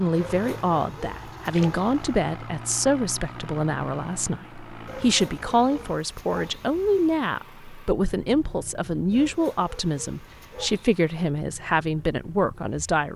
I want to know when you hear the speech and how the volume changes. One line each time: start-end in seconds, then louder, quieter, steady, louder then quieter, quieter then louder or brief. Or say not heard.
0.0-13.1 steady.